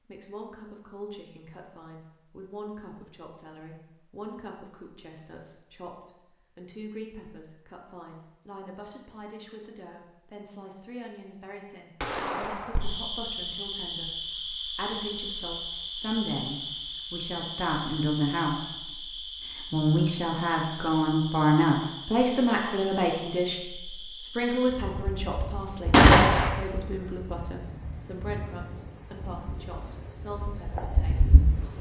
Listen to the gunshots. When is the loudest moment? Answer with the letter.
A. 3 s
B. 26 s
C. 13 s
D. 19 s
B.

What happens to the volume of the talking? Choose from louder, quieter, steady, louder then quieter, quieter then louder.
louder then quieter.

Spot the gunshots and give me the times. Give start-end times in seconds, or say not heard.
12.0-12.9, 25.9-26.5.